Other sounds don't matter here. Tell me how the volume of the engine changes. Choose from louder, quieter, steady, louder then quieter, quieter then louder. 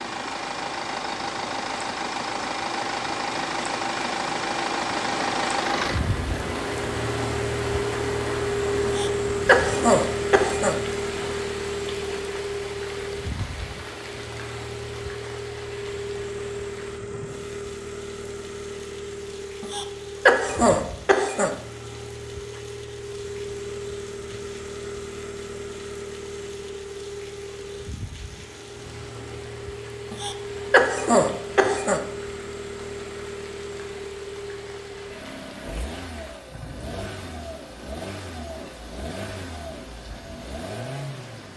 quieter.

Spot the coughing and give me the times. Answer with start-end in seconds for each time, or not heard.
8.8-10.8, 19.6-21.6, 30.1-32.0.